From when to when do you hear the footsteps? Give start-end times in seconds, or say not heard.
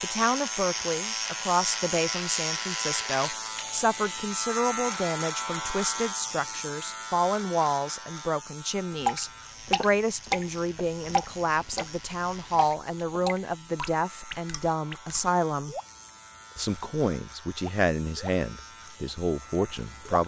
not heard.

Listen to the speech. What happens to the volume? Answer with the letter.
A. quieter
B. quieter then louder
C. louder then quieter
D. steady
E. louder
D.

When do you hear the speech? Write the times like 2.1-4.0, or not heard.
0.0-15.8, 16.6-20.2.